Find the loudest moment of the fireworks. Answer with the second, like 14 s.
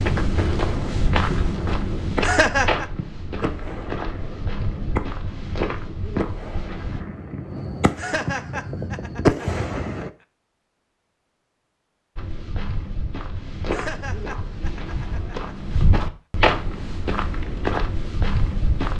9 s.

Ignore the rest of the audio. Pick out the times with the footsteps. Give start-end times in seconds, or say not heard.
0.0-7.0, 12.2-18.9.